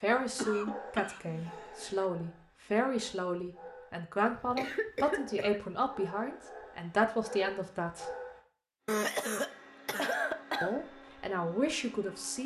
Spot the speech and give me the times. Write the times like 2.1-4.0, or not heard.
0.0-8.1, 10.6-12.4.